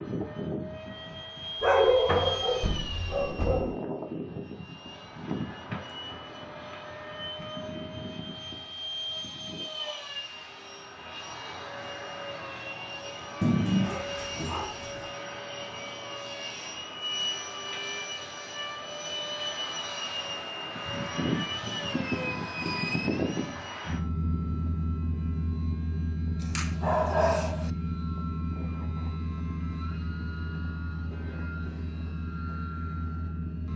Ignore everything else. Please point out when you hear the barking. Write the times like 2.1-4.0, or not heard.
1.6-3.8, 13.4-15.1, 26.4-27.7.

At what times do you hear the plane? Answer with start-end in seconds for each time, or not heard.
0.0-33.7.